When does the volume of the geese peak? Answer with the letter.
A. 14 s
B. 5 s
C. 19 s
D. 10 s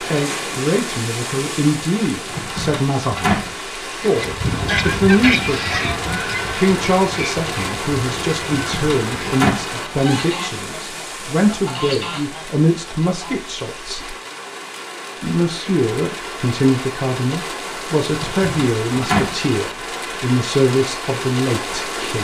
B.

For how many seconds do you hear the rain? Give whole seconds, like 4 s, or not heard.
22 s.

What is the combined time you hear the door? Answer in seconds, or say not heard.
4 s.